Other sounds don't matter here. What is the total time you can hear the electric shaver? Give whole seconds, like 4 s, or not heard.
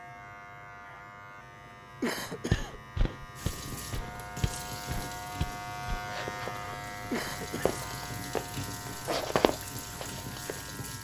11 s.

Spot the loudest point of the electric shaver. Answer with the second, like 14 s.
6 s.